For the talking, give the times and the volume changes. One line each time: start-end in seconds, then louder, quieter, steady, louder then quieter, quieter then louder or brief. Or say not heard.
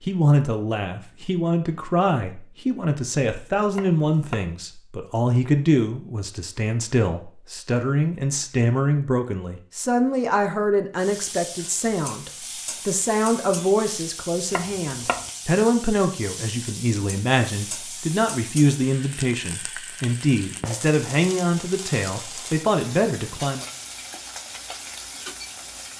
0.0-23.6 steady.